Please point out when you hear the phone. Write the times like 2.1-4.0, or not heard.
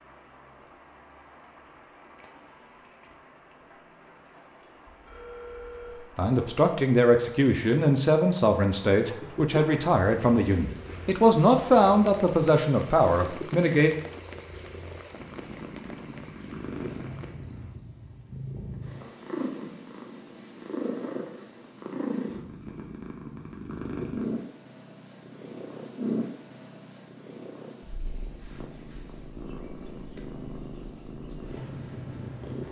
4.8-6.1.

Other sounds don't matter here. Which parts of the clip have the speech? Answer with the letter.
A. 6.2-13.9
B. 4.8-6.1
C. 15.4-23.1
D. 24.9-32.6
A.